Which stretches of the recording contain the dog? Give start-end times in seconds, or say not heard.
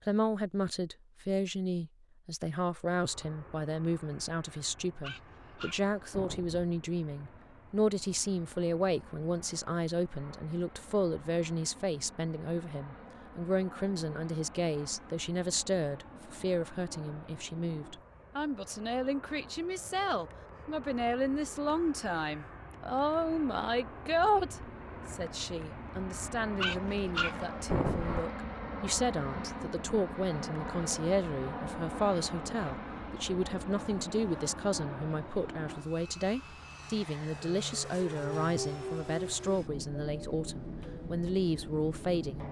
5.0-6.7, 26.6-28.2.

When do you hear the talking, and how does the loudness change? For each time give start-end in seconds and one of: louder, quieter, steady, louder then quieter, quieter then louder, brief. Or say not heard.
0.1-42.4 steady.